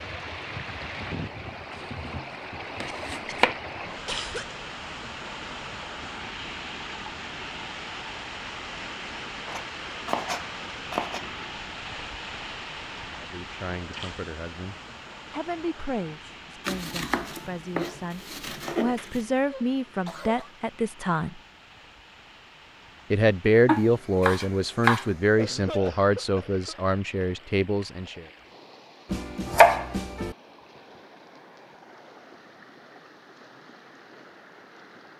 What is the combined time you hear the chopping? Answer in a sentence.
You can hear the chopping for 9 seconds altogether.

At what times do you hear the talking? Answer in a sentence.
The talking can be heard from 13.2 to 21.4 s and from 23.1 to 28.2 s.